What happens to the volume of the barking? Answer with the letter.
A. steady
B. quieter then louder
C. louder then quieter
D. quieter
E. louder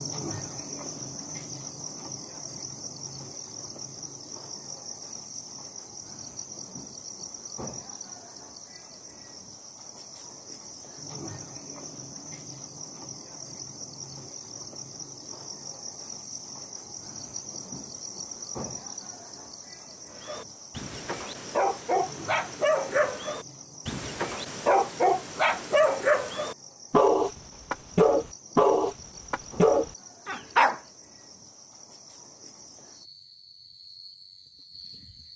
E.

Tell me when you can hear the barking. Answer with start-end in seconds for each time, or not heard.
20.1-30.8.